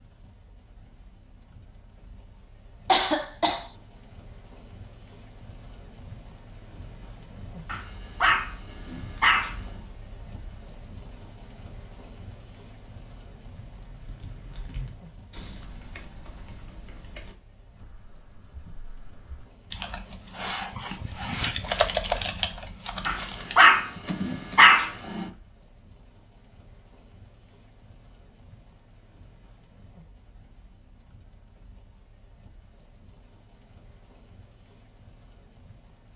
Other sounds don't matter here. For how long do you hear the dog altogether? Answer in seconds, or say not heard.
4 s.